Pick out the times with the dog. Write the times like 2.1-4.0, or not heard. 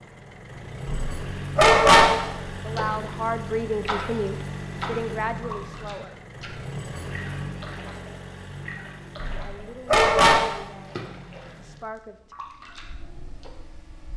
0.8-2.1, 9.2-10.4.